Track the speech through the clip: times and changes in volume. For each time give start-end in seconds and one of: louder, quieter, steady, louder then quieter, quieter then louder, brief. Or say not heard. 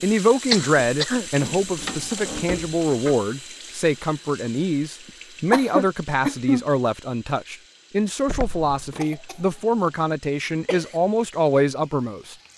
0.0-12.3 steady.